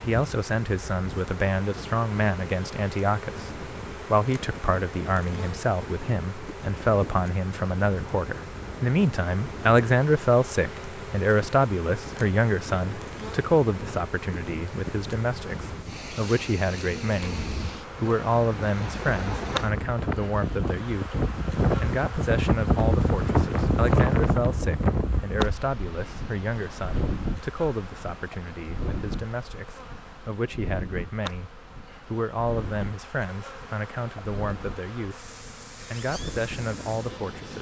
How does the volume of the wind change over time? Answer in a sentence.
The loudness of the wind goes up, then down.